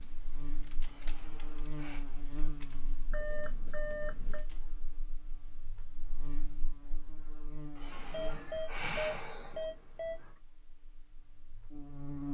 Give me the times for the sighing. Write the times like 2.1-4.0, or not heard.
0.8-2.0, 7.8-9.7.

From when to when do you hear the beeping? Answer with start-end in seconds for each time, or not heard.
3.1-4.5, 7.9-10.3.